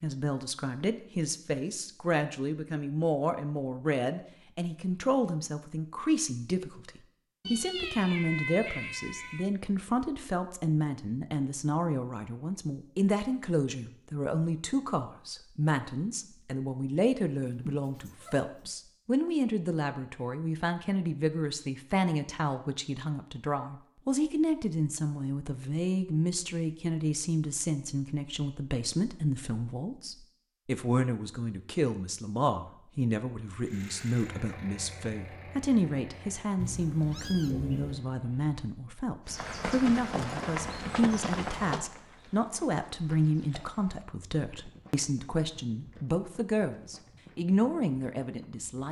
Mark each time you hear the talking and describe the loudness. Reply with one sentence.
The talking can be heard from 0.0 to 48.8 s, at a steady volume.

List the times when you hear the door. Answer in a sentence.
You can't hear the door here.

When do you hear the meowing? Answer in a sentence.
You can hear the meowing from 7.4 to 9.4 s, from 17.8 to 18.7 s and from 36.5 to 38.0 s.